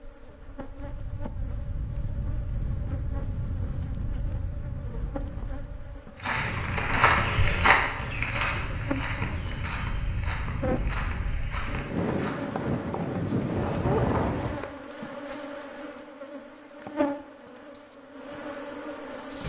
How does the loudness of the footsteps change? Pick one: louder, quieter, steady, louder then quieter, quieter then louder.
quieter.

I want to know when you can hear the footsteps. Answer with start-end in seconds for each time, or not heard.
6.2-12.4.